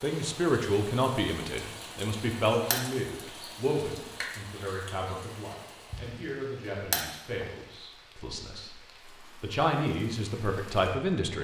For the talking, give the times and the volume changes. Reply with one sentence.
The talking can be heard from 0.0 to 11.3 s, getting quieter then louder.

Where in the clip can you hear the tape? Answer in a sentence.
The tape can't be heard in this clip.